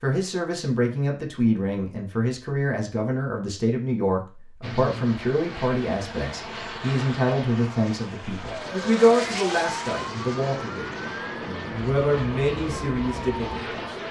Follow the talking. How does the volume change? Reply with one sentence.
The volume of the talking stays about the same.